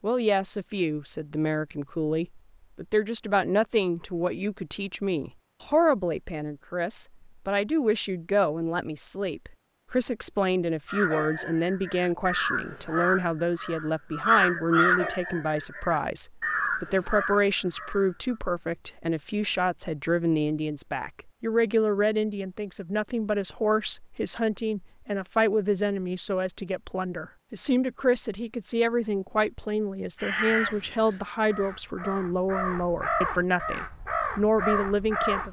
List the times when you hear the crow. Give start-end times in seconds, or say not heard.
10.8-18.1, 30.1-35.4.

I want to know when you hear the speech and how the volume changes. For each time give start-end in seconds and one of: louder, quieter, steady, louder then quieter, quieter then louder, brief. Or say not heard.
0.0-35.4 steady.